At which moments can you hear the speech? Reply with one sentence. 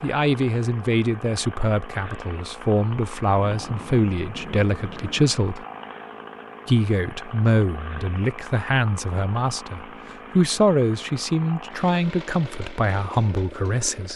You can hear the speech from 0.0 to 5.7 s and from 6.7 to 14.1 s.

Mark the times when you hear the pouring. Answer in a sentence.
You can't hear the pouring here.